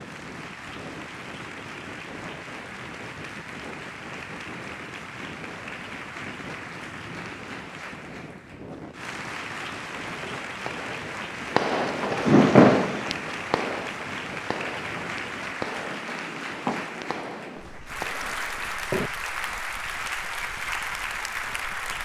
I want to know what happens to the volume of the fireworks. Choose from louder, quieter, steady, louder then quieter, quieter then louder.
louder then quieter.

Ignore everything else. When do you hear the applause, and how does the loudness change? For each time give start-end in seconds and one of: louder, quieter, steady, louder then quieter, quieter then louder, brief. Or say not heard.
0.0-21.9 louder.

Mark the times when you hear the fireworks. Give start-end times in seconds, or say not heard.
10.2-19.8.